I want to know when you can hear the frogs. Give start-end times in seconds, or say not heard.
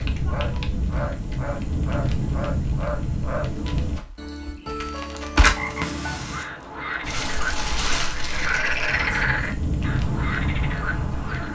0.0-11.5.